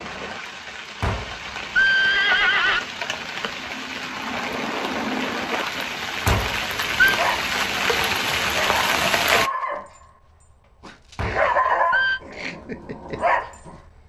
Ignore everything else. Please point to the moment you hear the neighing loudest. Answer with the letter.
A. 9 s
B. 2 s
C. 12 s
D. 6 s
B.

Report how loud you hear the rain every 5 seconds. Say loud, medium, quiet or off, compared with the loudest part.
medium, loud, off.